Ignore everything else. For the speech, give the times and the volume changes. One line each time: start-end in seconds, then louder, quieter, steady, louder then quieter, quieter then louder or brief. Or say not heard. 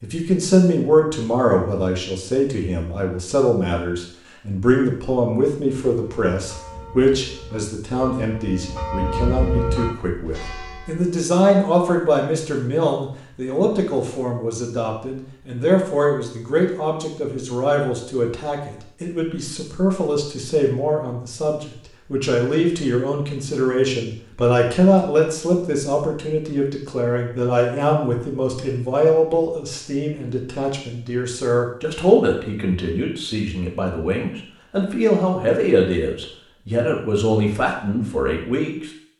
0.0-38.9 steady.